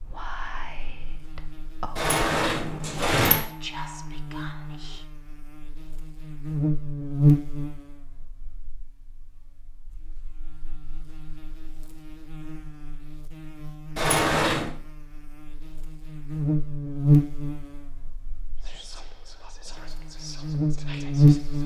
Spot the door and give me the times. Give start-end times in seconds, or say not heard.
1.9-3.5, 13.9-14.7.